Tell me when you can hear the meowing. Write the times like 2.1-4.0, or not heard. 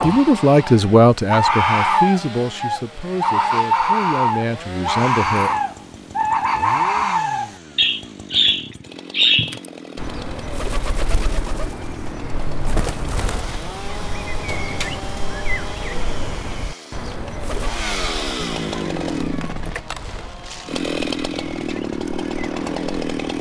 18.4-19.8.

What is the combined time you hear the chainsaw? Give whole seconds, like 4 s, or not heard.
23 s.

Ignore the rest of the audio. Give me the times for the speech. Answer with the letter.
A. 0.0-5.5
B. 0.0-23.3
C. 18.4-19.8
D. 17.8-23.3
A.